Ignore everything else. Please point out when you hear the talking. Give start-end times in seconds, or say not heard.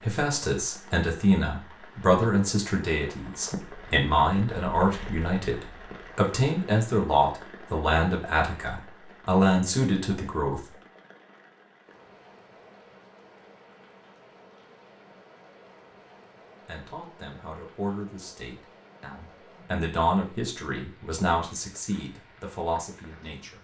0.0-10.7, 16.6-23.5.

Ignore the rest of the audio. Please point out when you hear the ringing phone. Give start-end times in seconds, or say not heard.
not heard.